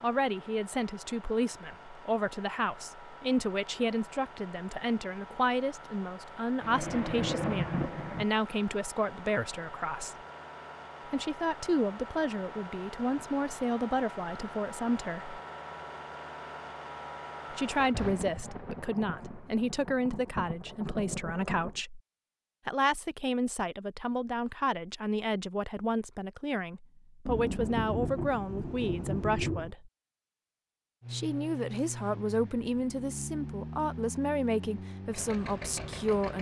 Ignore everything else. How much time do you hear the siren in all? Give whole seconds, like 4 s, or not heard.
not heard.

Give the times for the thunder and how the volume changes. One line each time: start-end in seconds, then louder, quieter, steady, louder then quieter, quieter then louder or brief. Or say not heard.
6.6-8.2 brief
17.6-21.8 quieter then louder
27.2-29.8 brief.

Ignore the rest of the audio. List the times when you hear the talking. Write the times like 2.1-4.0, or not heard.
0.0-10.2, 11.1-15.4, 17.5-22.0, 22.6-29.9, 31.1-36.3.